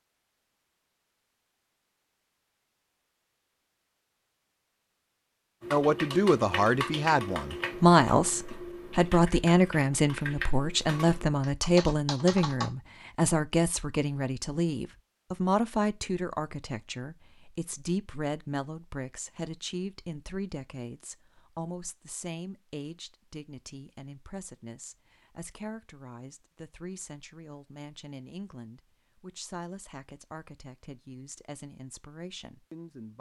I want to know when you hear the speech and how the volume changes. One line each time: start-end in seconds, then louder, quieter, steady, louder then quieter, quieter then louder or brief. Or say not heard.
5.7-33.1 quieter.